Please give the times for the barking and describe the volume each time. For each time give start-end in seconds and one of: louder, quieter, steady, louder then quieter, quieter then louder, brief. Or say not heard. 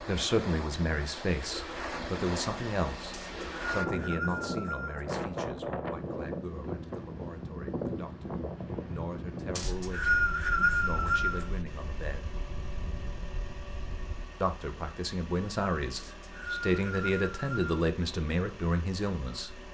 not heard.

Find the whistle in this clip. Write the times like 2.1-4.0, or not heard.
3.1-5.0, 9.6-11.4, 15.9-17.6.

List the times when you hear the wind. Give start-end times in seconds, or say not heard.
0.0-14.3.